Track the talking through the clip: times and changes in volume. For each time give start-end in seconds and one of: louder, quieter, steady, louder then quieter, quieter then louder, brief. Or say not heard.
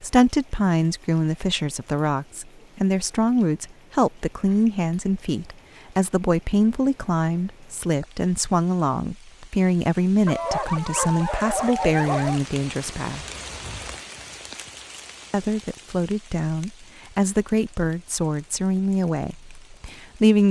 0.0-13.2 steady
15.3-20.4 quieter.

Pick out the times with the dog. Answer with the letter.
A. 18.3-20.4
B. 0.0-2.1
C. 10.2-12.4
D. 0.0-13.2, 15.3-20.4
C.